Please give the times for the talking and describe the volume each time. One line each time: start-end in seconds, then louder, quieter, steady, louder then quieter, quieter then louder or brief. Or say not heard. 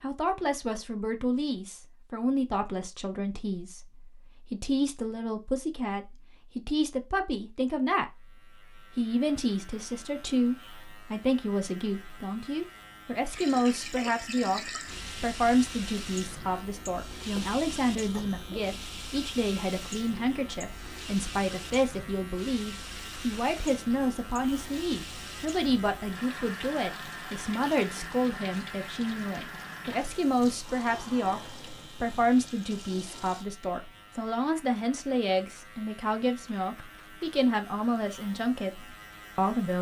0.0-8.2 steady
8.9-39.7 steady.